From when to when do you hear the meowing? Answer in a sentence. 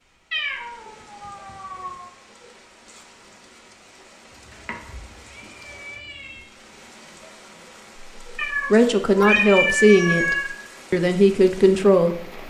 You can hear the meowing from 0.3 to 2.1 s, from 4.3 to 6.5 s and from 8.3 to 10.6 s.